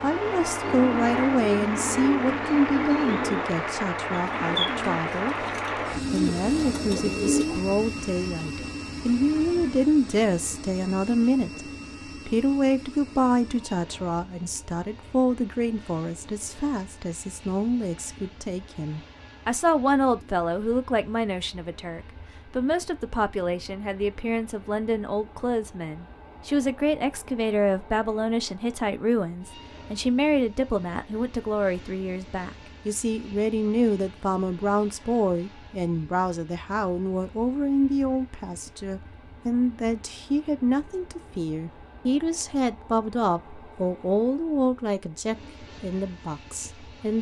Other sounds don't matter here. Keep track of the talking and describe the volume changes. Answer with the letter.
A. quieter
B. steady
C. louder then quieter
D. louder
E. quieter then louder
B.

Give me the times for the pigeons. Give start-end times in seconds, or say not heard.
0.6-7.6.